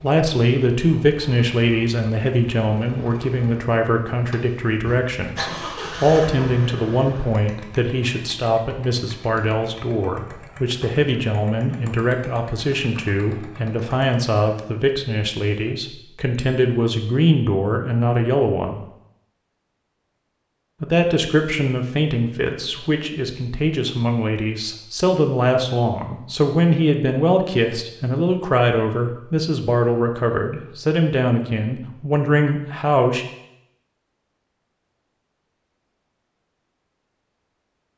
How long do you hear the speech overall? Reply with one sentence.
The speech can be heard for 31 seconds in total.